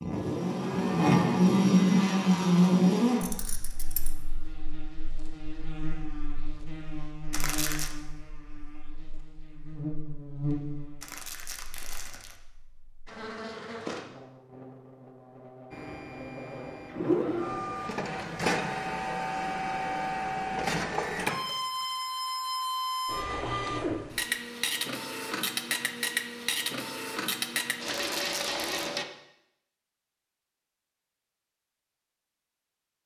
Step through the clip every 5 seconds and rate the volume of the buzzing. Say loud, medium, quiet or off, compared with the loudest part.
loud, quiet, quiet, quiet, off, off, off.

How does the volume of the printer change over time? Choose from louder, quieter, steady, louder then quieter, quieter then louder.
steady.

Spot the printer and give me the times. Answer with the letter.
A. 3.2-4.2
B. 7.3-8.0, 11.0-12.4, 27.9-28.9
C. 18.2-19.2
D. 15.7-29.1
D.